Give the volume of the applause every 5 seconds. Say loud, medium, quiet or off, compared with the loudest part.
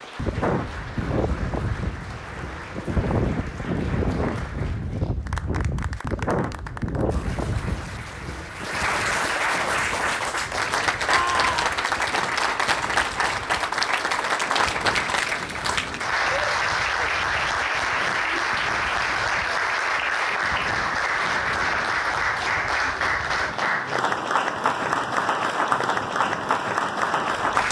quiet, medium, loud, loud, loud, loud.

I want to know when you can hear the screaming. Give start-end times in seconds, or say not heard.
11.1-11.7.